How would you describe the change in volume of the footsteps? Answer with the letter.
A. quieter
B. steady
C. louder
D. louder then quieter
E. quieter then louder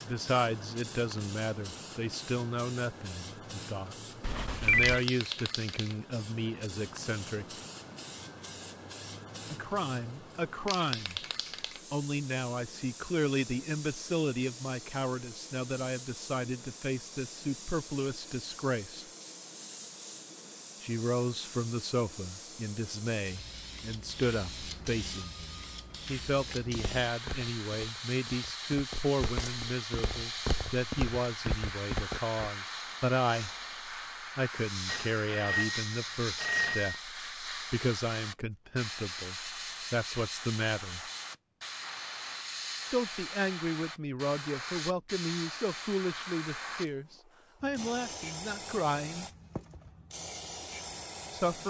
C.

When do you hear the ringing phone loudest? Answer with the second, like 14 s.
5 s.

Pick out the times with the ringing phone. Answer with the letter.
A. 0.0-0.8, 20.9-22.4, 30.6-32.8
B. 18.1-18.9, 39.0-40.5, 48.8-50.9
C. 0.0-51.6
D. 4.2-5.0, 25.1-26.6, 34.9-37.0
D.